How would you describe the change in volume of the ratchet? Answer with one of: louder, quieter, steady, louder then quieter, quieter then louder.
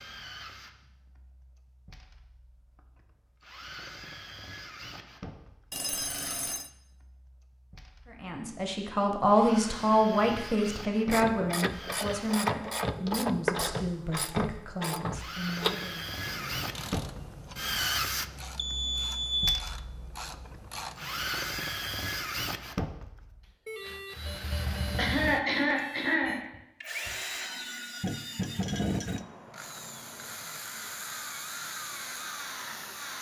quieter.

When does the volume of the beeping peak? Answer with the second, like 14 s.
19 s.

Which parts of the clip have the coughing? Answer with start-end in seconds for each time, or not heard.
24.9-26.5.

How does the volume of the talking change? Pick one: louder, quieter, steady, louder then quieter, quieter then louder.
quieter.